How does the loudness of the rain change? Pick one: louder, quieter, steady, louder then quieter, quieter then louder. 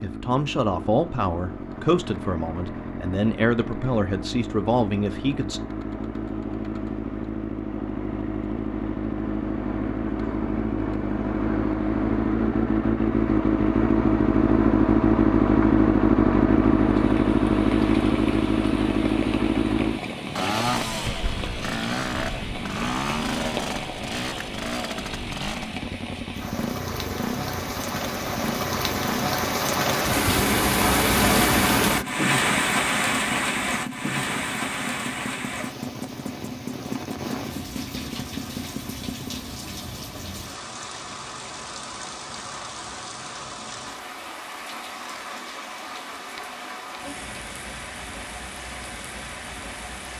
louder then quieter.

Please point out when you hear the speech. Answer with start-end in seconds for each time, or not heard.
0.0-5.6.